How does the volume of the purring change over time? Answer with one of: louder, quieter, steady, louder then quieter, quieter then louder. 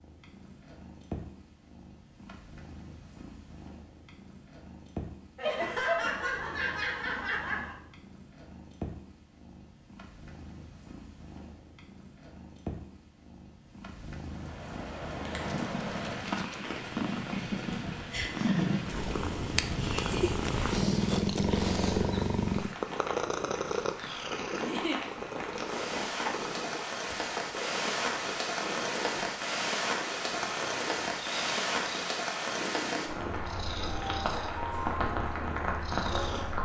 louder then quieter.